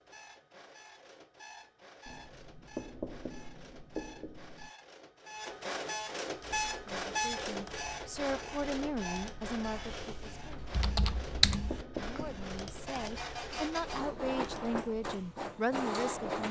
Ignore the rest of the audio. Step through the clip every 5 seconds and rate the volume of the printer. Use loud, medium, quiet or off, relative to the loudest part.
quiet, loud, medium, loud.